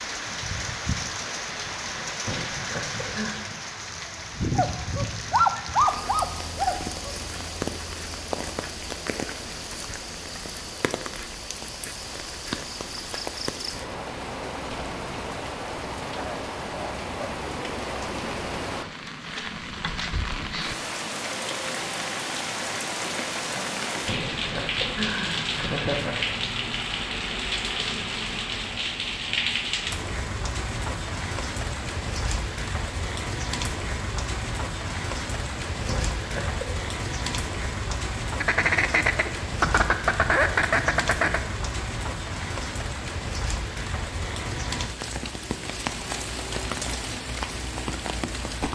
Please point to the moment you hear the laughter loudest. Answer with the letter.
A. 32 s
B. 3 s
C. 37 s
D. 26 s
D.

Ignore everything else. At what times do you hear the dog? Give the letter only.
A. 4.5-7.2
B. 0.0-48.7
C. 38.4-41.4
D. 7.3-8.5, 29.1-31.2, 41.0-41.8
A.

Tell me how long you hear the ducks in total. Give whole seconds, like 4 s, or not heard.
3 s.